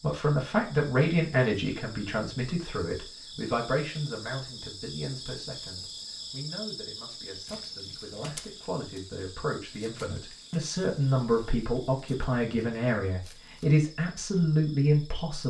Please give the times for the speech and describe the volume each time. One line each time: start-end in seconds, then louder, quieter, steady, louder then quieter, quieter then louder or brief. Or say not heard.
0.0-15.4 quieter then louder.